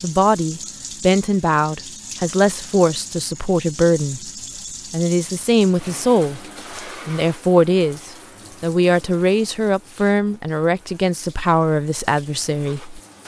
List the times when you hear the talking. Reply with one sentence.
The talking can be heard from 0.0 to 4.3 s, from 4.9 to 6.4 s and from 7.0 to 13.0 s.